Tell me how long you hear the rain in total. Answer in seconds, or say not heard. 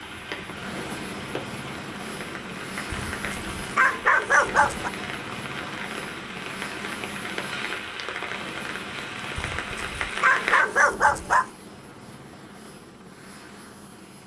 11 s.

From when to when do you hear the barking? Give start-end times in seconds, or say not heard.
2.9-4.9, 9.3-11.4.